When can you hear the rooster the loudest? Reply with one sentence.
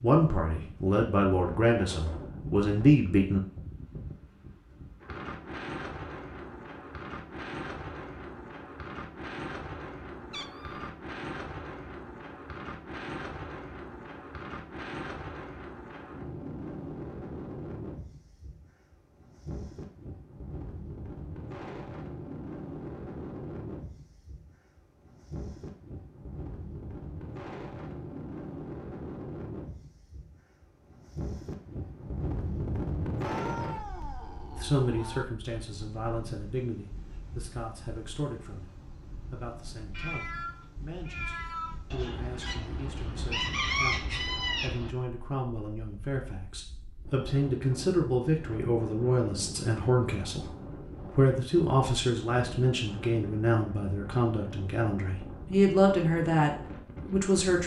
The loudest moment of the rooster is at 44 seconds.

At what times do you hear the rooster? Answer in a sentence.
The rooster can be heard from 41.9 to 45.0 s.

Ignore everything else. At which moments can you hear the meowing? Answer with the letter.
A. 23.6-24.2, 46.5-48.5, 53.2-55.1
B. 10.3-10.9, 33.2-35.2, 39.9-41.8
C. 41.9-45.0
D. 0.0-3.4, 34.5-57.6
B.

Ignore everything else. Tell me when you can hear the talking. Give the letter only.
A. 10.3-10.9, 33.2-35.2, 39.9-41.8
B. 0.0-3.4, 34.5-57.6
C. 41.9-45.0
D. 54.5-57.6
B.